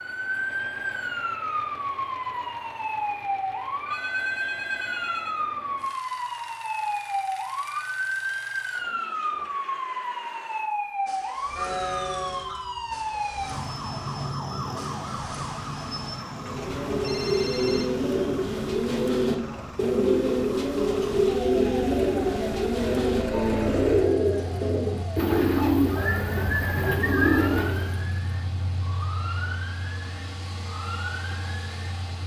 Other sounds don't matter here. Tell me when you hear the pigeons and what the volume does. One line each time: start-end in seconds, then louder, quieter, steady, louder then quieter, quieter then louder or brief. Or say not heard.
16.4-28.0 steady.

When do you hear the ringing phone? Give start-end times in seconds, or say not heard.
3.9-5.5, 16.9-17.9.